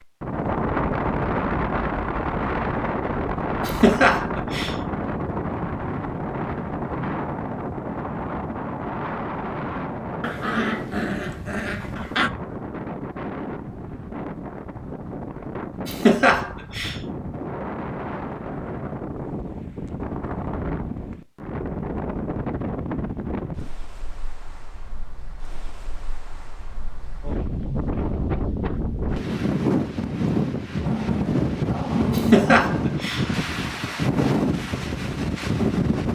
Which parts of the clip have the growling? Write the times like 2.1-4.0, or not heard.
10.2-12.3, 30.8-32.5.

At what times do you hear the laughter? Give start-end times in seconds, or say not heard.
3.6-4.8, 15.8-16.9, 32.1-33.2.